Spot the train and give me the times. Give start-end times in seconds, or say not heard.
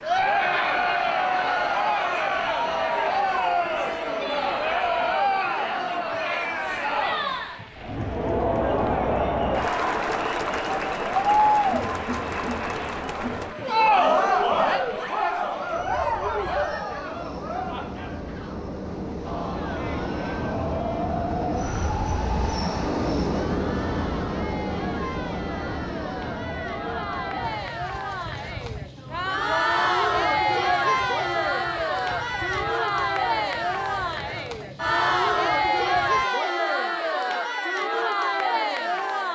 0.0-36.2.